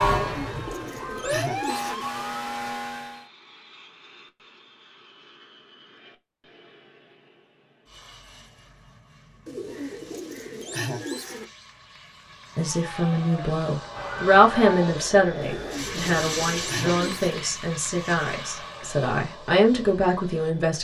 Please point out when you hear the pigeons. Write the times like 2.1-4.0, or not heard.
0.0-2.0, 9.4-11.4, 15.4-17.4.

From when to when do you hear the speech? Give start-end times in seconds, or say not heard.
12.6-20.8.